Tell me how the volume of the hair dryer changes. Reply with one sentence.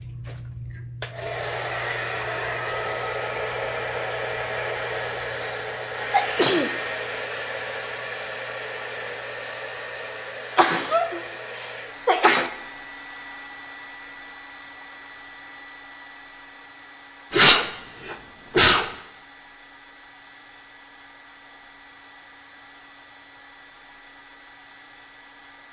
The loudness of the hair dryer goes down.